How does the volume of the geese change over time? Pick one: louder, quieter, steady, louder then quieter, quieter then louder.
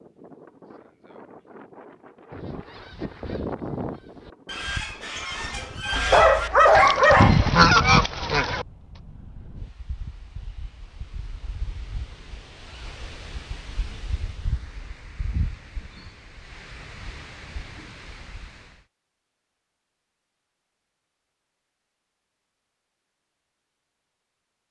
louder.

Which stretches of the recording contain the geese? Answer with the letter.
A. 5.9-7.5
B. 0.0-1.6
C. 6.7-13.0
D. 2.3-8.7
D.